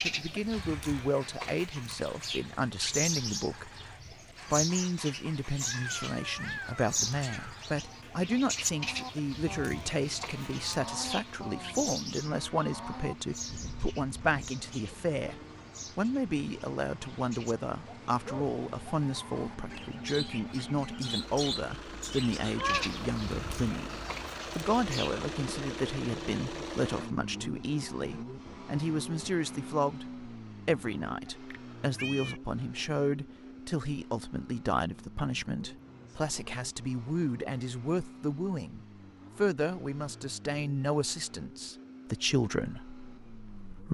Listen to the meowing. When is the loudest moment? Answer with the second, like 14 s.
23 s.